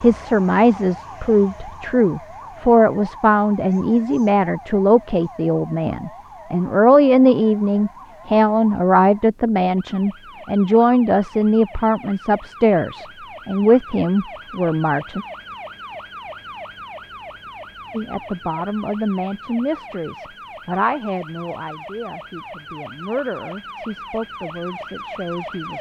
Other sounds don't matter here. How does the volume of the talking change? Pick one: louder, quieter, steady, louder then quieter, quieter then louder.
quieter.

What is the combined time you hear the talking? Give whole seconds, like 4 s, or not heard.
23 s.